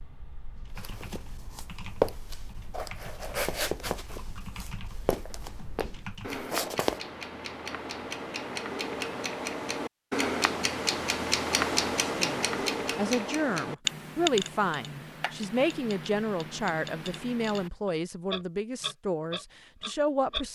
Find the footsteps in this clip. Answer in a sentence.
You can hear the footsteps from 0.8 to 7.0 s.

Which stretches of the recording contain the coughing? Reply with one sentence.
The coughing can't be heard in this clip.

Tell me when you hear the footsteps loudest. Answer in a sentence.
The volume of the footsteps peaks at 2 seconds.